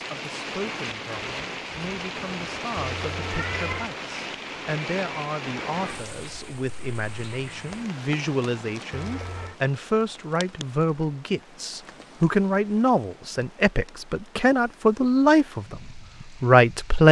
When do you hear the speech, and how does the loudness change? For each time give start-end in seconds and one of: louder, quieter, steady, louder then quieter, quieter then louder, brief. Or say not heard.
0.0-17.0 louder.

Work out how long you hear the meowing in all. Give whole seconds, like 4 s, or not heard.
2 s.